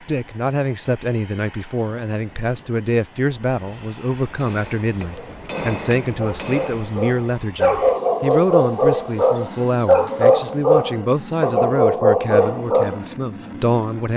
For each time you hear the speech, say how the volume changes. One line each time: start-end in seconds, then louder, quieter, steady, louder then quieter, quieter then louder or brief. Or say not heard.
0.1-14.1 steady.